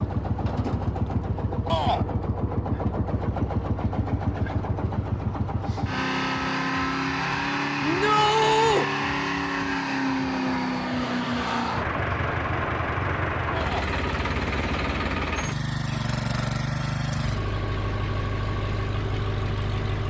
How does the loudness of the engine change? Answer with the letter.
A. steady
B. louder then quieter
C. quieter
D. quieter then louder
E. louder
A.